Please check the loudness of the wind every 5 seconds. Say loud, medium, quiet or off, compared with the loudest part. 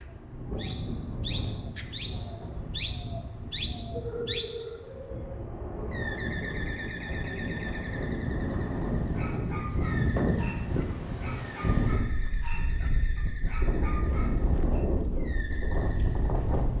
medium, loud, loud, loud.